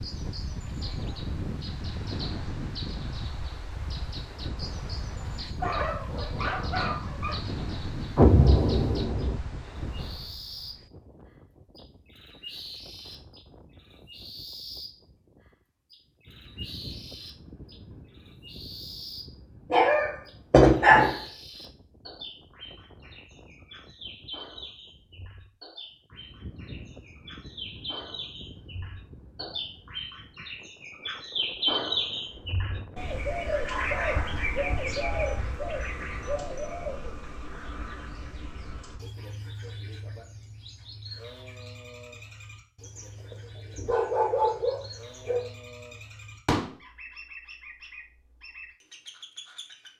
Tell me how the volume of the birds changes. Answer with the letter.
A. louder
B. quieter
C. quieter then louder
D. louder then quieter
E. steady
D.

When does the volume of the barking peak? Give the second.
21 s.